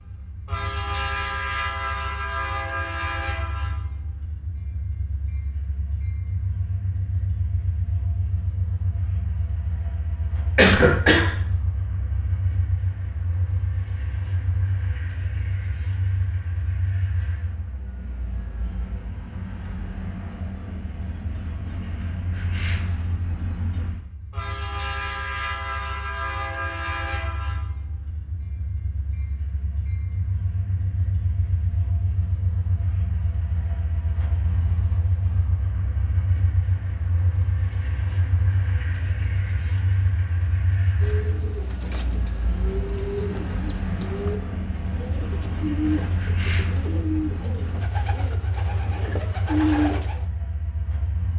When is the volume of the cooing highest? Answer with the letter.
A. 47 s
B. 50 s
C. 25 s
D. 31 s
B.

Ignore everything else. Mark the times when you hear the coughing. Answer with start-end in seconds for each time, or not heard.
10.6-11.3.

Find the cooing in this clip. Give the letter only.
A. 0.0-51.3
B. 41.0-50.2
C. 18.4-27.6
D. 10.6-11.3
B.